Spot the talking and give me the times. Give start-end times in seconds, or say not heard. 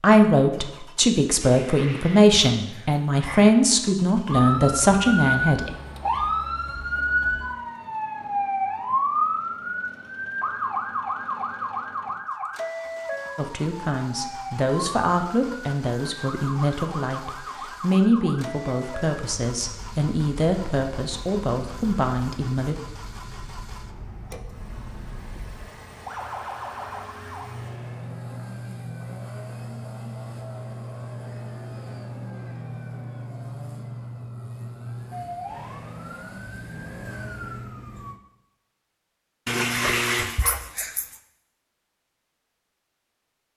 0.0-5.7, 13.3-22.8.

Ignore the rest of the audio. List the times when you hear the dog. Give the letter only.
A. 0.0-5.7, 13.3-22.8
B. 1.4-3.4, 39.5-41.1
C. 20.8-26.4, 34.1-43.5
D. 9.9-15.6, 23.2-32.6
B.